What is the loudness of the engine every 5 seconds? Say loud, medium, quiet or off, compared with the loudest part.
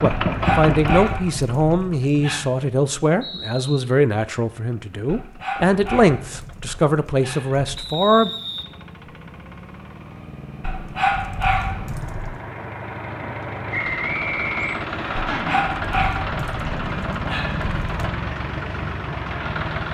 loud, quiet, medium, loud.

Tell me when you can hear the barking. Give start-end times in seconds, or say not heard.
0.2-2.5, 5.0-7.7, 10.6-12.4, 15.3-18.1.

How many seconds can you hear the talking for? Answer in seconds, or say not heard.
8 s.